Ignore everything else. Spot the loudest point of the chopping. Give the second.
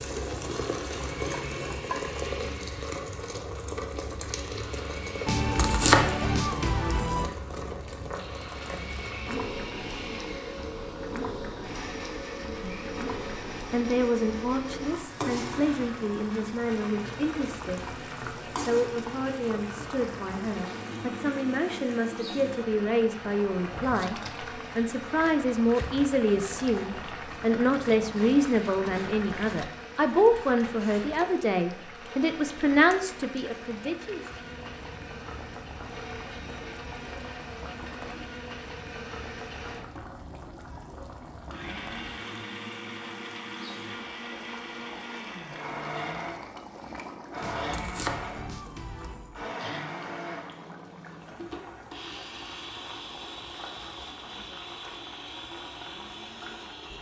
6 s.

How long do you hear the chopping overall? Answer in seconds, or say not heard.
4 s.